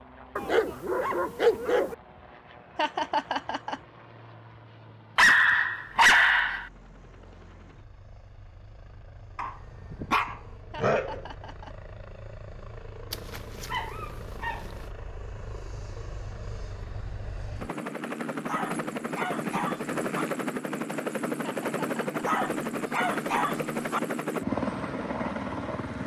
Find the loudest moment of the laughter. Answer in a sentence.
The volume of the laughter peaks at 3 seconds.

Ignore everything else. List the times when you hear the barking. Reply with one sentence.
You can hear the barking from 0.3 to 1.9 s, from 5.2 to 6.7 s, from 9.3 to 11.2 s, from 13.1 to 14.8 s, from 18.4 to 20.2 s and from 22.2 to 24.0 s.